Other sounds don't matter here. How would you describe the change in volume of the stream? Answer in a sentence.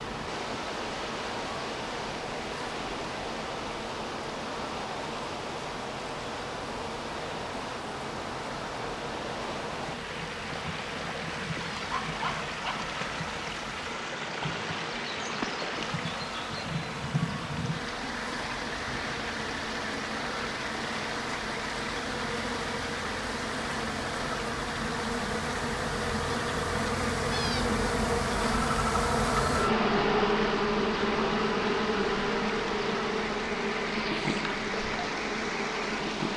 The loudness of the stream stays about the same.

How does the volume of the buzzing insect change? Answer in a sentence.
The loudness of the buzzing insect goes up.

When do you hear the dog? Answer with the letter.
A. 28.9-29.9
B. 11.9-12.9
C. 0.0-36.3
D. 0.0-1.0
B.